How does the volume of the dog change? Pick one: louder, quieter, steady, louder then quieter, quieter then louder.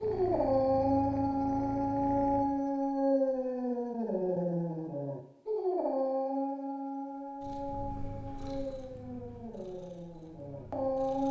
quieter.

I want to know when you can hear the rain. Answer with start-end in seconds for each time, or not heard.
not heard.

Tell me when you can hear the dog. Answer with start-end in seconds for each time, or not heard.
0.0-11.2.